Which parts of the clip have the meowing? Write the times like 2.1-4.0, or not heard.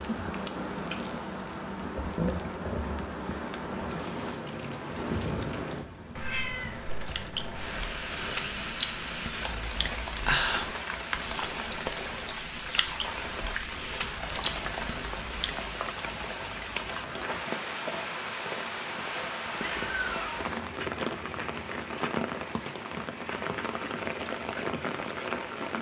6.2-7.8, 19.6-20.4.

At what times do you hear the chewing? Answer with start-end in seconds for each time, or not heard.
7.1-15.6.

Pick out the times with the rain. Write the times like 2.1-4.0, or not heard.
0.0-25.7.